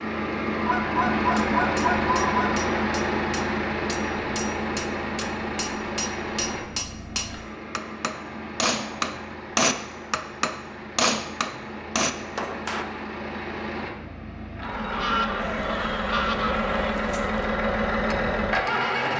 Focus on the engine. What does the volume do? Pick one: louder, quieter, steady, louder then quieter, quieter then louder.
quieter then louder.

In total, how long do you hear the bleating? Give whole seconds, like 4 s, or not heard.
2 s.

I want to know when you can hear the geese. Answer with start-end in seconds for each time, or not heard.
0.6-2.5, 14.9-16.9.